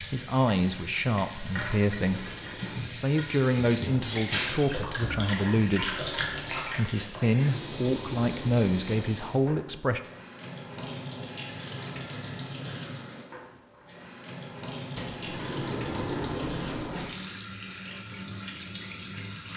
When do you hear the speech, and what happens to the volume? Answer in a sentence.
The speech can be heard from 0.0 to 10.0 s, at a steady volume.